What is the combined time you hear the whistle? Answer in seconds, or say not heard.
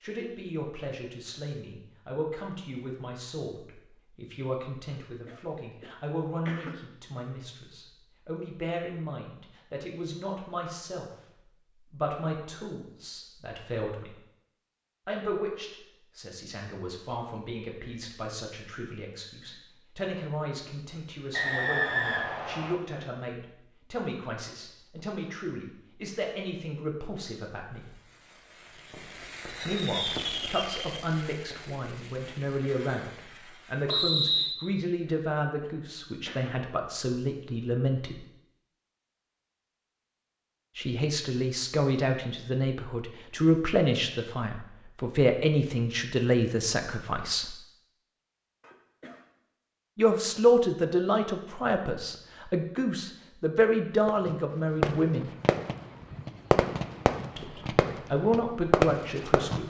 2 s.